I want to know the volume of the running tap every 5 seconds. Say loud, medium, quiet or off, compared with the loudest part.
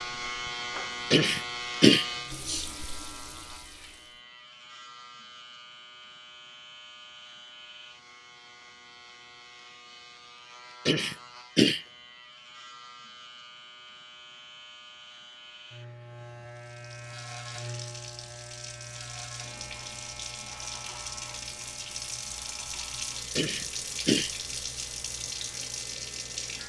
medium, off, off, medium, loud, loud.